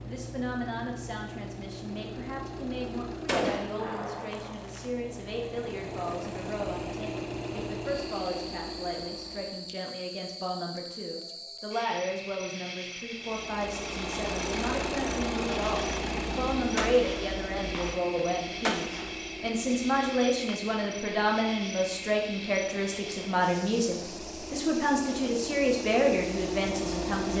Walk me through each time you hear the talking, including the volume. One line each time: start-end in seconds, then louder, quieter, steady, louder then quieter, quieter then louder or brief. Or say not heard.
0.0-27.3 louder.